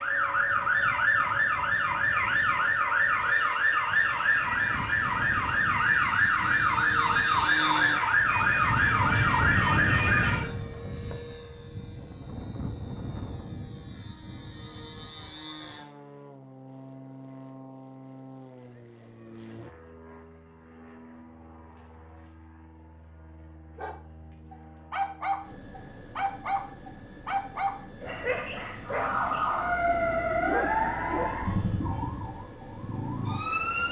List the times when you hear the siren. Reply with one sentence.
The siren can be heard from 0.0 to 10.5 s and from 28.8 to 33.8 s.